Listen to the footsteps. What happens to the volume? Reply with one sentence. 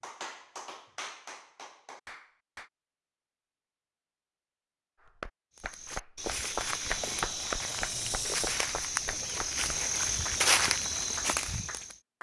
The loudness of the footsteps goes up.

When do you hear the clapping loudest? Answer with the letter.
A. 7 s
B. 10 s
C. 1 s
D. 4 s
A.